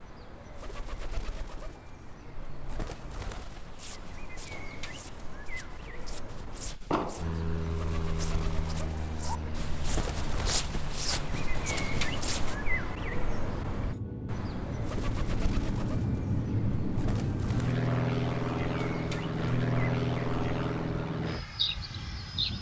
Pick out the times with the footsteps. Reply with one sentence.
The footsteps can be heard from 3.4 to 12.6 s.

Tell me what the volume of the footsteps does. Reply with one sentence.
The volume of the footsteps goes up.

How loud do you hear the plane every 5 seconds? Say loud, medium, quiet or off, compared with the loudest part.
off, medium, medium, loud, loud.